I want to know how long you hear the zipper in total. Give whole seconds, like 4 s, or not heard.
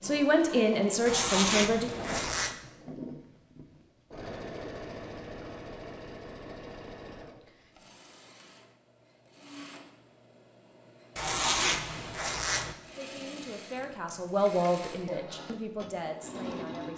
3 s.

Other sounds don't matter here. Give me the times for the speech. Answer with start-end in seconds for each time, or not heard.
0.0-1.9, 12.9-16.9.